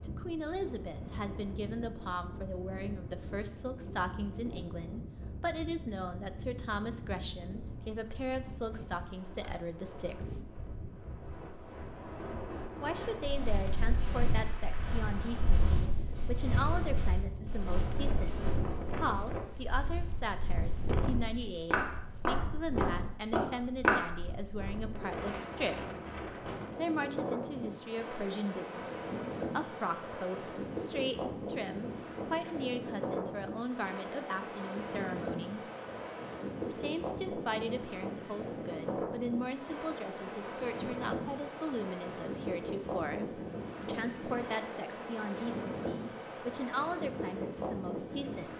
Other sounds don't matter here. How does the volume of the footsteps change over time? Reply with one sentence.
The volume of the footsteps goes down, then up.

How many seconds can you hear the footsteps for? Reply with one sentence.
You can hear the footsteps for 11 seconds altogether.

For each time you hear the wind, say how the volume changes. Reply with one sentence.
The wind can be heard from 0.0 to 48.5 s, getting louder.